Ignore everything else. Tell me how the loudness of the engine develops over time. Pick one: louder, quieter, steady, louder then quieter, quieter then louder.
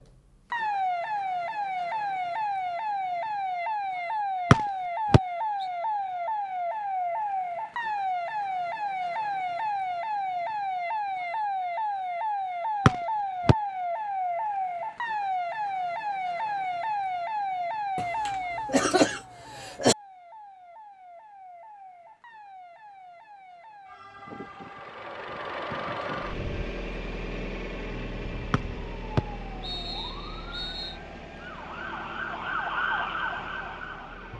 quieter.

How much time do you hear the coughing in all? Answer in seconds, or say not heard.
2 s.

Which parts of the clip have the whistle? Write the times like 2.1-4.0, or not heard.
4.5-5.2, 12.8-13.6, 28.5-30.9.